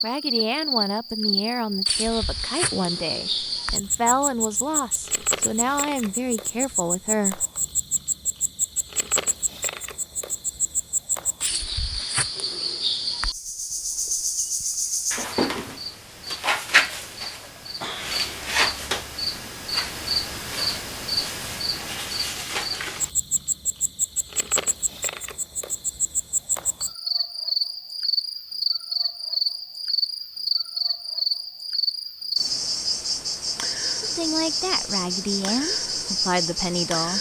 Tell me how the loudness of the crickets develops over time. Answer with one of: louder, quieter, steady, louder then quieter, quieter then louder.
steady.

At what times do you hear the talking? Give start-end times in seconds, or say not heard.
0.0-7.5, 34.0-37.1.